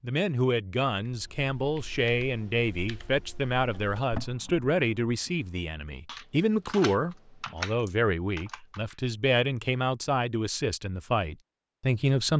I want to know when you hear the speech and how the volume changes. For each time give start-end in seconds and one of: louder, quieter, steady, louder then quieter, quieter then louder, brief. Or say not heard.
0.0-12.3 steady.